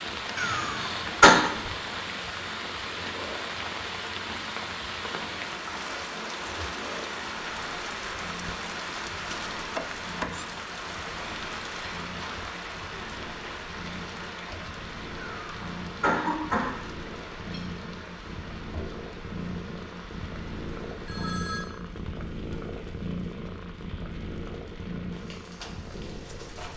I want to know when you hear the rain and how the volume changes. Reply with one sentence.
The rain can be heard from 0.0 to 26.7 s, getting quieter.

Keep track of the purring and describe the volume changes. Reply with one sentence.
The volume of the purring goes up.